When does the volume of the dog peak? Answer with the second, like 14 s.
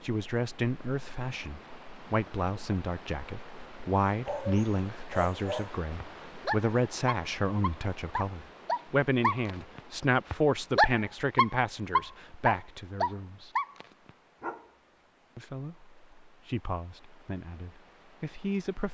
11 s.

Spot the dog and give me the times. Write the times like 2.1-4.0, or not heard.
4.2-14.7.